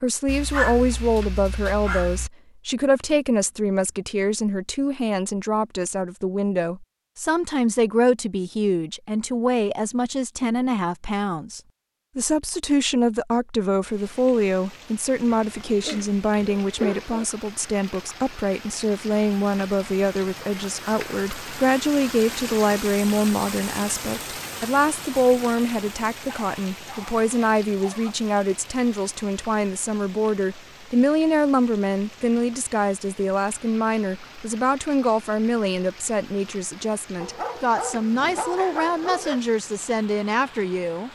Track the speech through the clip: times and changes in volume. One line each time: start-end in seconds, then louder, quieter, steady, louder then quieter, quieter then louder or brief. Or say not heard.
0.0-41.0 steady.